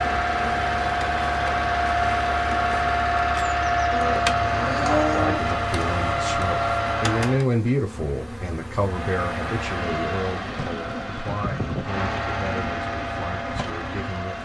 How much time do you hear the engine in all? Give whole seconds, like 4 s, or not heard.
13 s.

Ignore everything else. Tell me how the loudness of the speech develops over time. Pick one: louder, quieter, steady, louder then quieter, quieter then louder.
louder then quieter.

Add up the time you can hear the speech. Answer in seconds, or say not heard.
9 s.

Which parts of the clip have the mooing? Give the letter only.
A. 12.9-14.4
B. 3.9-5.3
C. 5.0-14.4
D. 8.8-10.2
B.